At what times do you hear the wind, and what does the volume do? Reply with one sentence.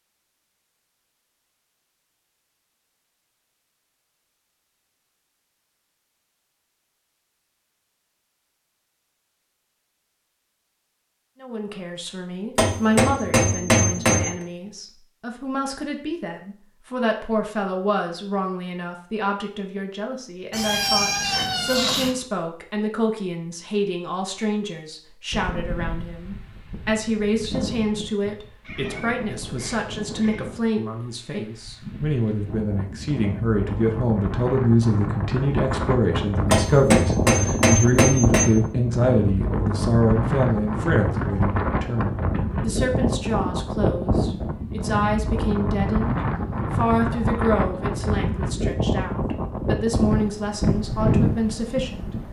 You can hear the wind from 25.3 to 52.2 s, getting louder.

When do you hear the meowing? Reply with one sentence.
You can hear the meowing from 20.5 to 22.1 s and from 28.6 to 30.5 s.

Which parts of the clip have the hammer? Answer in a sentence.
You can hear the hammer from 12.6 to 14.3 s and from 36.5 to 38.5 s.